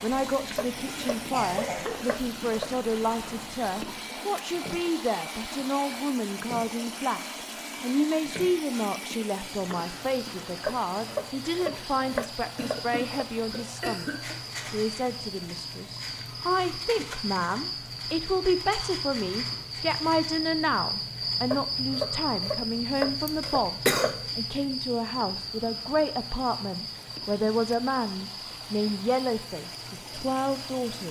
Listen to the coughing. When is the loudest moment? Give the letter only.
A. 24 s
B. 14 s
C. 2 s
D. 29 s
A.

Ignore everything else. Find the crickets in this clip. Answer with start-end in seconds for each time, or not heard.
0.0-31.0.